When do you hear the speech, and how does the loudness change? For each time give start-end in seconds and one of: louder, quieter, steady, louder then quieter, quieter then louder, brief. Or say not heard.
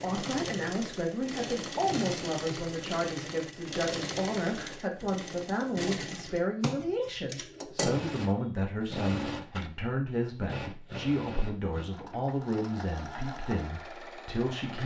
0.0-14.8 steady.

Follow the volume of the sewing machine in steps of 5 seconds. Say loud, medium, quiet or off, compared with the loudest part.
loud, loud, medium.